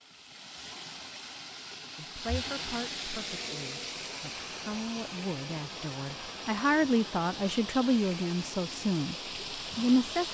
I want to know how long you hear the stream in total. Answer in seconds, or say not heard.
10 s.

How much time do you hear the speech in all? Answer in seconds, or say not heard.
8 s.